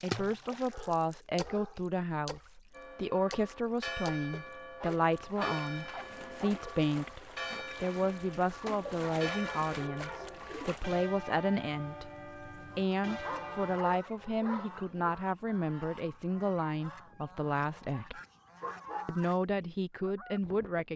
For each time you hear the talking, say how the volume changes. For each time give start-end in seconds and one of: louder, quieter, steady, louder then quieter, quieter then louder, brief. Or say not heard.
0.0-18.2 steady
19.1-20.9 brief.